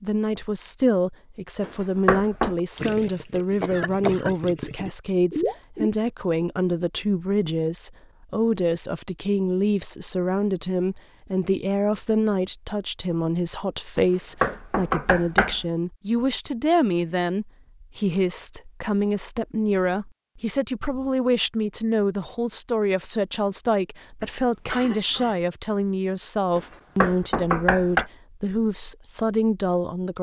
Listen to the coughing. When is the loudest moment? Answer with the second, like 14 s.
4 s.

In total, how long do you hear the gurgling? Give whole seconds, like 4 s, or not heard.
3 s.